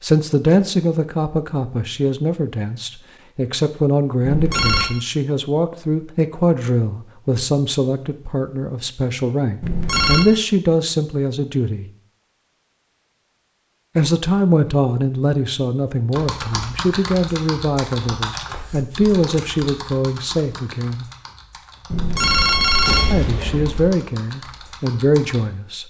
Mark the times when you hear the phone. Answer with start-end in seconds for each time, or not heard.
4.2-4.9, 9.6-10.2, 21.9-23.9.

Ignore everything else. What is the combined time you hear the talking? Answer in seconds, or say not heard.
22 s.